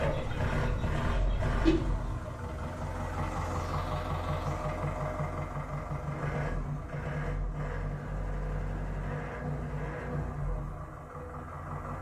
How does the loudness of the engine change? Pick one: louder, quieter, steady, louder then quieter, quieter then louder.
steady.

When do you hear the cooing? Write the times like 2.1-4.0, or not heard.
0.0-1.9.